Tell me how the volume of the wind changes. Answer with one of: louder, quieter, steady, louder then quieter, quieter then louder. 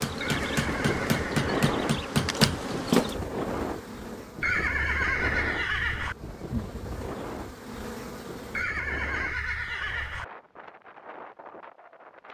quieter.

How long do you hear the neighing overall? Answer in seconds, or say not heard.
5 s.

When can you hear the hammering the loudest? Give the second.
2 s.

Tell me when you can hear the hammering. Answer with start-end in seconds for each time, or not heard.
0.0-3.1.